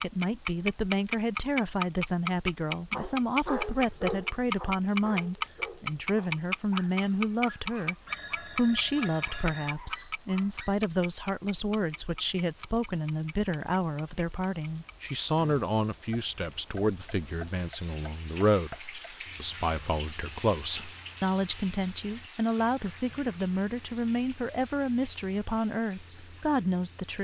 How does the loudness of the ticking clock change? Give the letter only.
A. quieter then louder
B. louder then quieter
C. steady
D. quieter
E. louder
D.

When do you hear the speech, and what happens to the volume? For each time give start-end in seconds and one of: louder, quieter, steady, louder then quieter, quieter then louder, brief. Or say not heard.
0.0-27.1 steady.